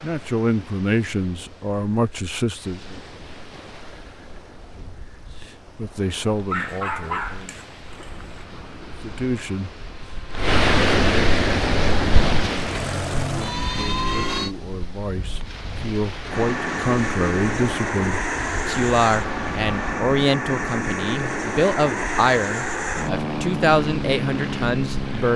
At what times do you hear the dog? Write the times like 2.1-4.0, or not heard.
6.5-8.4.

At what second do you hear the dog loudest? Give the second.
7 s.